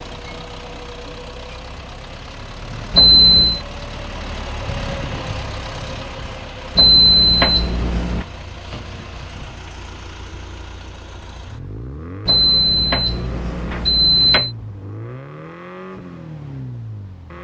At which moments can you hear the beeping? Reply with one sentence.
You can hear the beeping from 2.9 to 3.6 s, from 6.8 to 8.2 s and from 12.2 to 14.5 s.